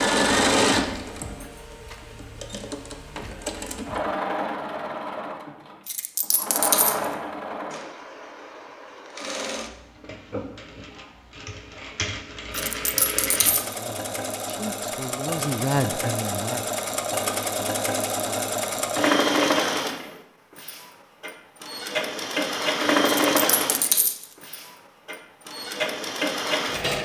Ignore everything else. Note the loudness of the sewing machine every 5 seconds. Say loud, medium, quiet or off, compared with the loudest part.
loud, medium, medium, loud, loud, loud.